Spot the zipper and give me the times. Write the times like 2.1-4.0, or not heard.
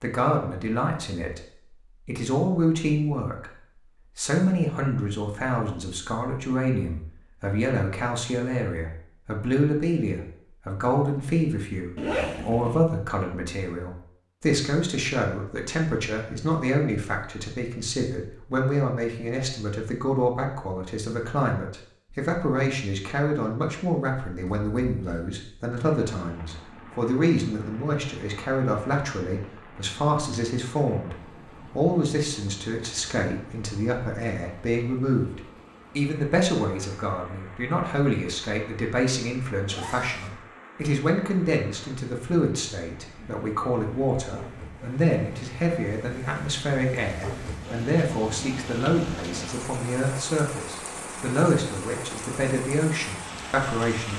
11.9-12.8, 24.4-25.2, 39.6-40.4.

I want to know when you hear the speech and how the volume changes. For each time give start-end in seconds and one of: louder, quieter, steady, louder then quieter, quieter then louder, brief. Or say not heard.
0.0-1.4 brief
2.0-3.5 brief
4.2-54.1 steady.